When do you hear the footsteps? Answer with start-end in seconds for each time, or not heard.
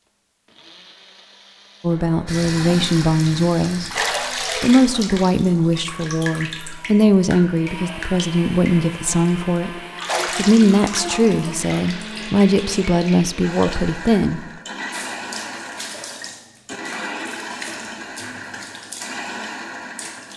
not heard.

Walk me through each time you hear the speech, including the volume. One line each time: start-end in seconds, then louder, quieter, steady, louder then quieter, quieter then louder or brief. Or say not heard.
1.8-3.9 brief
4.5-14.4 steady.